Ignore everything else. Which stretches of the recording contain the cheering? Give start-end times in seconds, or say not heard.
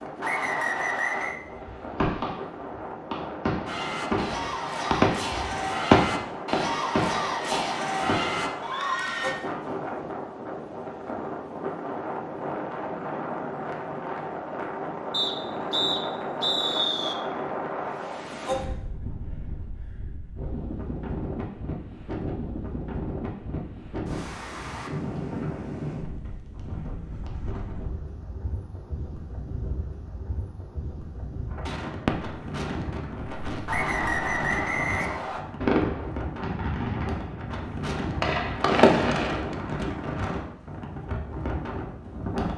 3.6-9.3.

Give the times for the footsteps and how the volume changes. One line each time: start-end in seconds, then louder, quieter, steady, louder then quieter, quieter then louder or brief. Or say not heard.
not heard.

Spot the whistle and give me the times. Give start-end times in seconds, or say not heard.
0.2-1.4, 15.1-17.1, 33.6-35.5.